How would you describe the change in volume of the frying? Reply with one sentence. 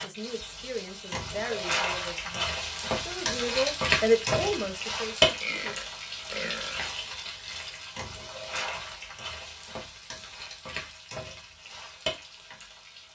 The volume of the frying goes up, then down.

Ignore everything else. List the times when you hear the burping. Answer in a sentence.
You can hear the burping from 5.4 to 6.9 s.